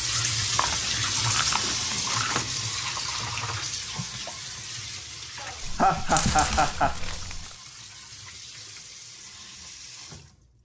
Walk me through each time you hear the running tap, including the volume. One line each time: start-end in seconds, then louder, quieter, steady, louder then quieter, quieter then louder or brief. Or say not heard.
0.0-10.5 quieter.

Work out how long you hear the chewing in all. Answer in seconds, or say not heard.
4 s.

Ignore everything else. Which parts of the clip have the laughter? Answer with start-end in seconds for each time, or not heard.
5.4-7.0.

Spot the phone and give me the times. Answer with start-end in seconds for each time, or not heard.
not heard.